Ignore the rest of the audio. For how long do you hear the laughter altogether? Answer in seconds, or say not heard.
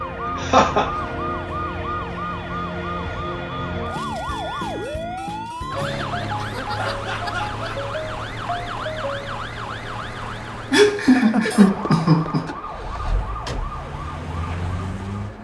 3 s.